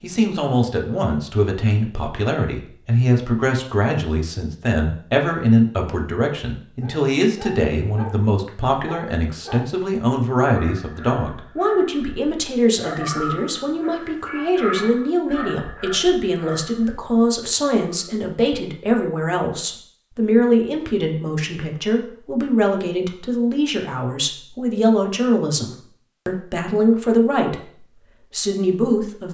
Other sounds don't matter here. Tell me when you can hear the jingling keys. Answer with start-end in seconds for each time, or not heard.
not heard.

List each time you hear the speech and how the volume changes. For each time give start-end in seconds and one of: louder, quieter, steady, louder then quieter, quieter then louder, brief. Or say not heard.
0.0-29.2 steady.